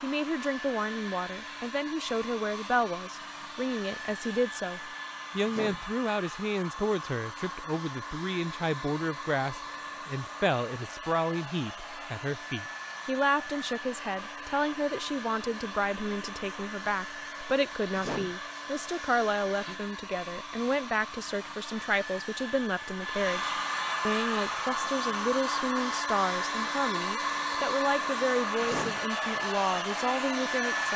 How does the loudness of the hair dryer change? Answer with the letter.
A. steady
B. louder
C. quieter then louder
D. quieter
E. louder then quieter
B.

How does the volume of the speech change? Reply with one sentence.
The loudness of the speech stays about the same.